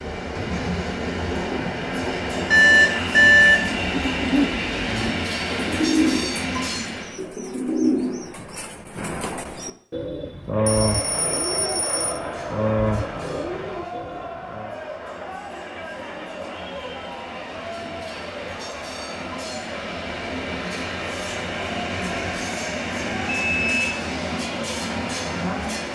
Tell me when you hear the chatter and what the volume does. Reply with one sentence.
You can hear the chatter from 10.5 to 25.8 s, at a steady volume.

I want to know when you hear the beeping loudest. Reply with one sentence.
The loudest moment of the beeping is at 3 seconds.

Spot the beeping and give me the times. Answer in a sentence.
You can hear the beeping from 2.5 to 3.6 s, from 10.7 to 12.2 s and from 23.4 to 23.9 s.